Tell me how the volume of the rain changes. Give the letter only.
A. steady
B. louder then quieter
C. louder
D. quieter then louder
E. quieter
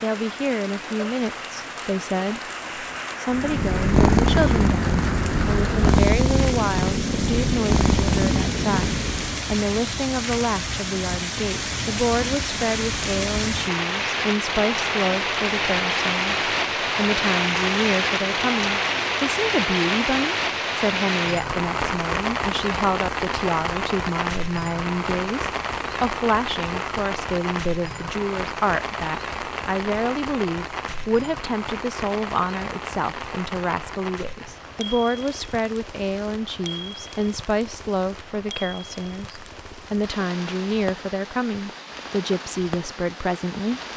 B.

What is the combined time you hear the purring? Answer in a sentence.
You can hear the purring for 6 seconds altogether.